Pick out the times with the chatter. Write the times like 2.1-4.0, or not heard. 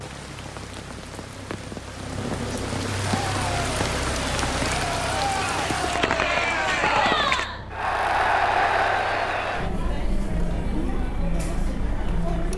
3.1-12.5.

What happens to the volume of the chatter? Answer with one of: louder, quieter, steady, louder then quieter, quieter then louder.
louder then quieter.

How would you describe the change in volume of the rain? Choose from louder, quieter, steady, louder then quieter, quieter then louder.
louder.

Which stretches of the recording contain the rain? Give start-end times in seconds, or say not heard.
0.0-7.5.